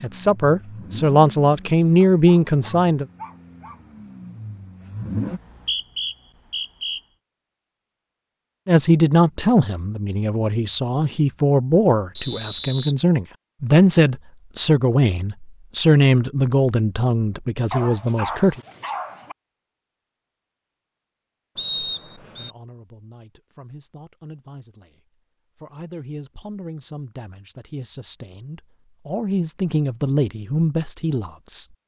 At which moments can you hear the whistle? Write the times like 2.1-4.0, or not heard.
5.2-7.0, 12.2-12.9, 21.6-22.5.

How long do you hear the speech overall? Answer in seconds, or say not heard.
22 s.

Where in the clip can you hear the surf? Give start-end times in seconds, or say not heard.
not heard.